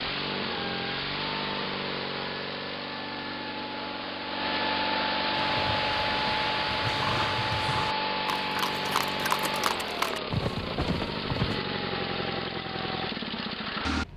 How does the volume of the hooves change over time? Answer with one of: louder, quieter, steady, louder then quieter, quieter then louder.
louder.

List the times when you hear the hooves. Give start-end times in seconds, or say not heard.
5.3-11.7.